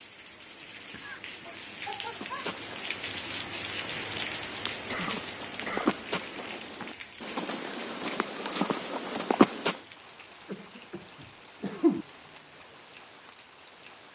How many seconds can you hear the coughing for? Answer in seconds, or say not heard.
3 s.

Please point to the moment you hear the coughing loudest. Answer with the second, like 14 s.
12 s.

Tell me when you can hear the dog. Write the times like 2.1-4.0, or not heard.
1.4-2.5.